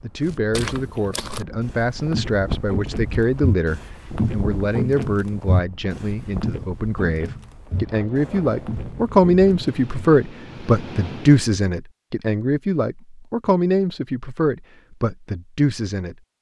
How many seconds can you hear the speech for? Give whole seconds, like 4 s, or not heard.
16 s.